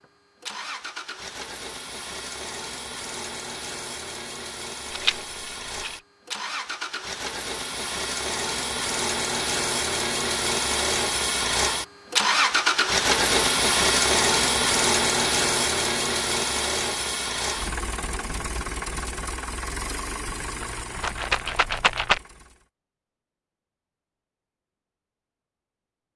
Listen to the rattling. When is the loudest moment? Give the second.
22 s.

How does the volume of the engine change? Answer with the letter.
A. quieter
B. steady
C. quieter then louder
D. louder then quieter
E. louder
D.